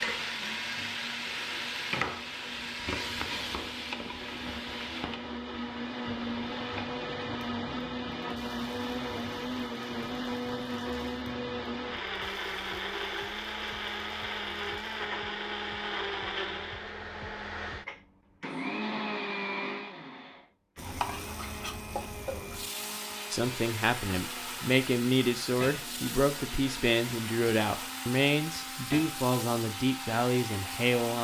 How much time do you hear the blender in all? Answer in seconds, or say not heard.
31 s.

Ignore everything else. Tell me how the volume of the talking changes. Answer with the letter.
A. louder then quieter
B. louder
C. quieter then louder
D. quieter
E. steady
E.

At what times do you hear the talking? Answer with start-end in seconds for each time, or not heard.
23.3-31.1.